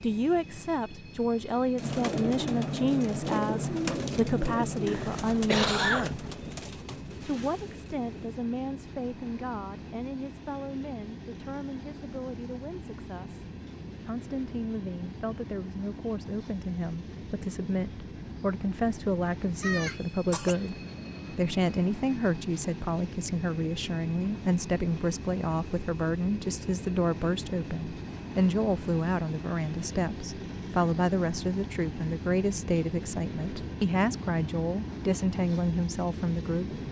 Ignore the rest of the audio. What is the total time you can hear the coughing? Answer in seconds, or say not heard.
2 s.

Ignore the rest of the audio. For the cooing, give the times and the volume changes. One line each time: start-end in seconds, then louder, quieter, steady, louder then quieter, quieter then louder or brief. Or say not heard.
1.8-8.2 quieter.